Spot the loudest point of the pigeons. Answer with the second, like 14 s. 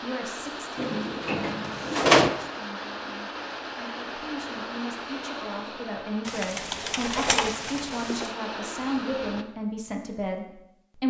2 s.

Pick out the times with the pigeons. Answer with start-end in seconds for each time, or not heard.
0.8-2.3, 6.2-8.3.